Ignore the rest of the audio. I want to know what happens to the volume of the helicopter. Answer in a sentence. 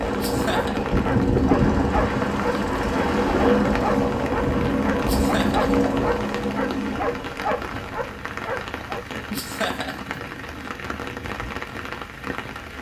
The volume of the helicopter goes down.